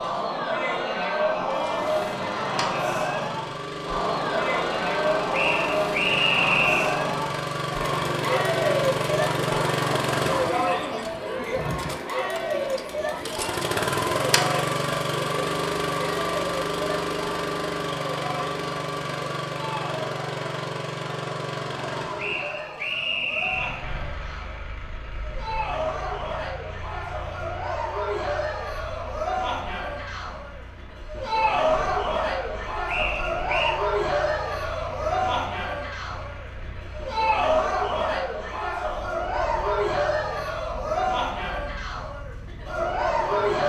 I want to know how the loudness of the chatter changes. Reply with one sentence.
The volume of the chatter goes down, then up.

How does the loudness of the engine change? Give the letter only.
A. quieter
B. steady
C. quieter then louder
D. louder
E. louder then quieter
A.